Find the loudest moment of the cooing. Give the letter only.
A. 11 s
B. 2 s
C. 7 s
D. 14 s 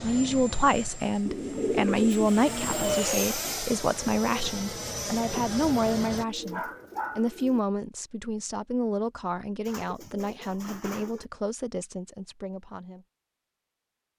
B.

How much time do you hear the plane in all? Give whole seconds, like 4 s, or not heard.
6 s.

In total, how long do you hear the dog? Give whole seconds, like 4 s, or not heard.
not heard.